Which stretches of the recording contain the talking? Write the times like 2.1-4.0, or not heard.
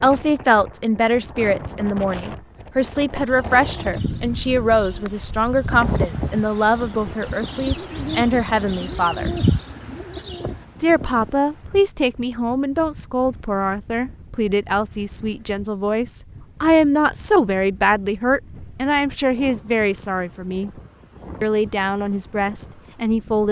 0.0-9.3, 10.8-20.7, 21.4-23.4.